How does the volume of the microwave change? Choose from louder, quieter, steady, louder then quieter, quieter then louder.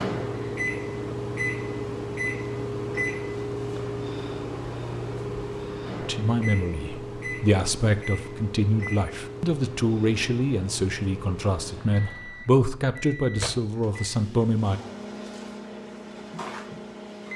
quieter.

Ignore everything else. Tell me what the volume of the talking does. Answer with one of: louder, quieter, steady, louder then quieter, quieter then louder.
steady.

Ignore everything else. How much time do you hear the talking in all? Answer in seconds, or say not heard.
9 s.